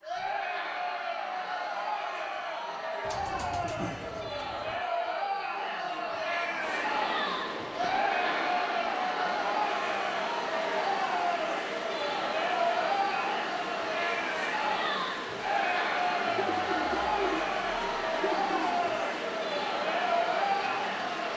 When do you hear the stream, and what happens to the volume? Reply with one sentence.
The stream can be heard from 6.6 to 21.3 s, at a steady volume.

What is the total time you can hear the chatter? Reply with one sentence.
The chatter can be heard for 21 seconds in total.